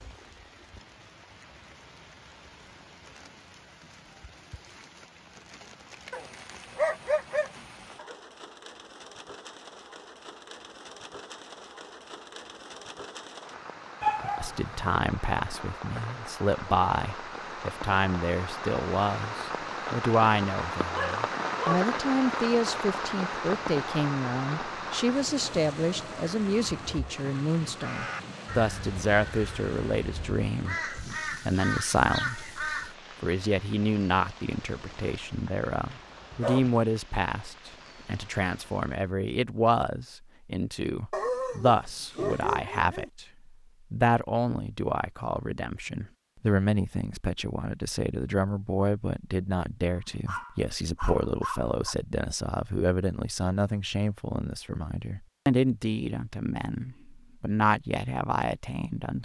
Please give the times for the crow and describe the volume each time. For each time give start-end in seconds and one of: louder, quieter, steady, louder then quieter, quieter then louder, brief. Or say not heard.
27.8-33.0 louder.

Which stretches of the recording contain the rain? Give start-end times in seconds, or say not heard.
0.0-39.1.